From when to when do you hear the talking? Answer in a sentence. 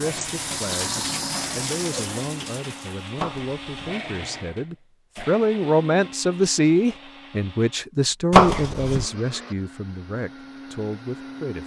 You can hear the talking from 0.0 to 11.6 s.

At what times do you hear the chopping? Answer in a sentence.
You can hear the chopping from 3.1 to 3.9 s and from 8.3 to 9.1 s.